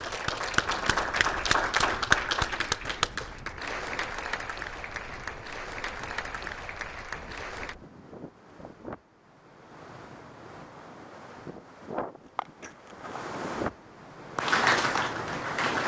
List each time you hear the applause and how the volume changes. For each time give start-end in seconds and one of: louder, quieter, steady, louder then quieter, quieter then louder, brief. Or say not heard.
0.0-7.8 quieter
14.3-15.8 brief.